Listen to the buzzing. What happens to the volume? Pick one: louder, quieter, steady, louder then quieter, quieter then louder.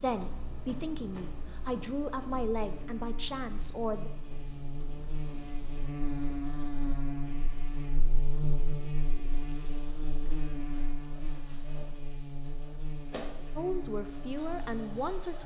louder then quieter.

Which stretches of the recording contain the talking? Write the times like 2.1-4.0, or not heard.
0.0-4.1, 13.6-15.4.